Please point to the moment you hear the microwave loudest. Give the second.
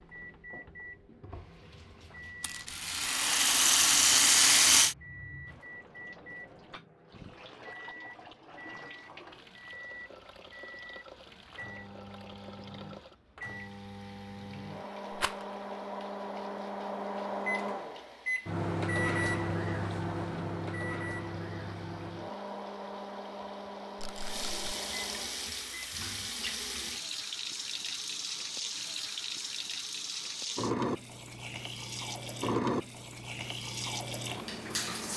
19 s.